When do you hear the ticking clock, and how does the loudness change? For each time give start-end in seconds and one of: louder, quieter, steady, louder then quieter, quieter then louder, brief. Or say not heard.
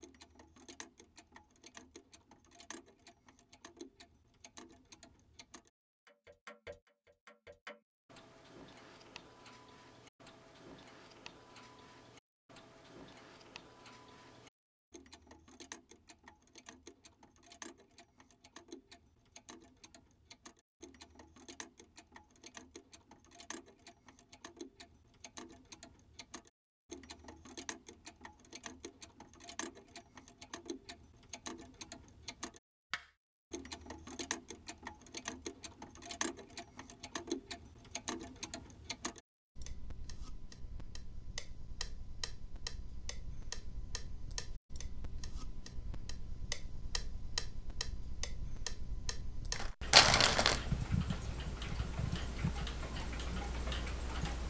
0.0-54.4 louder.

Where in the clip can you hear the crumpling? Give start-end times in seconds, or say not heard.
49.5-50.7.